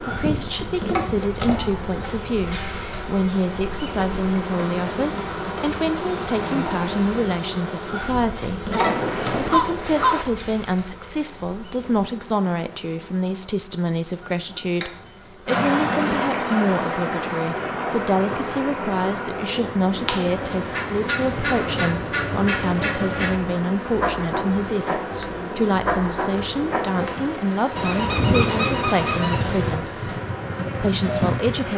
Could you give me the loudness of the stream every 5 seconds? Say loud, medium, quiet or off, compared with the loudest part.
off, off, off, loud, medium, medium, medium.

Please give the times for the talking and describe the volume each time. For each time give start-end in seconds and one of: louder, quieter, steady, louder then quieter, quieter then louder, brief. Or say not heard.
0.0-8.7 steady
9.3-30.2 steady
30.8-31.7 brief.